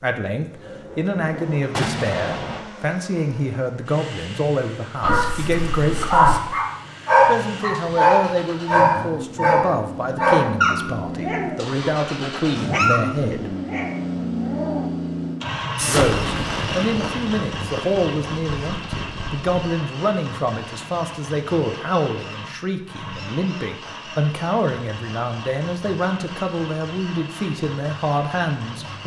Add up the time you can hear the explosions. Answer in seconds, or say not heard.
5 s.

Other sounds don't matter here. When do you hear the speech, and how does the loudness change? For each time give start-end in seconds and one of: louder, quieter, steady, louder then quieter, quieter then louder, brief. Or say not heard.
0.0-6.5 steady
7.2-13.6 steady
15.8-29.0 steady.